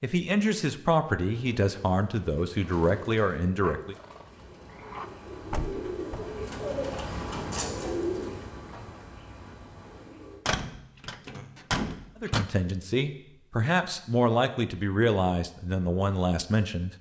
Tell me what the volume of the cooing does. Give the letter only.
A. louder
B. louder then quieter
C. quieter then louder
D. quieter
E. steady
B.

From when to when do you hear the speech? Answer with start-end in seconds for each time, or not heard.
0.0-4.0, 12.2-16.9.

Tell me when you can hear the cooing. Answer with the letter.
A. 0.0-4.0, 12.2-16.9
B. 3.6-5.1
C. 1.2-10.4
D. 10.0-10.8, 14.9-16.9
C.